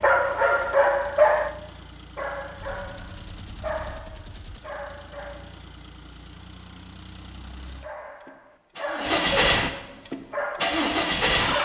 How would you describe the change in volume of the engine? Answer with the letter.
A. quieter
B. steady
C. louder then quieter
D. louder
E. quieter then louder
D.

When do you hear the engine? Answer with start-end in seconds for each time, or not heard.
0.0-11.6.